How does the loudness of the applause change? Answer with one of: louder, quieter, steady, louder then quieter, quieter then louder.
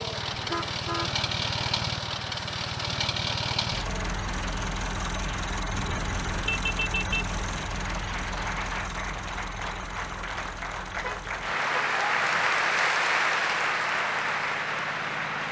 louder.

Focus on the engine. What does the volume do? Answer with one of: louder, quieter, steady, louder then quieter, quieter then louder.
quieter.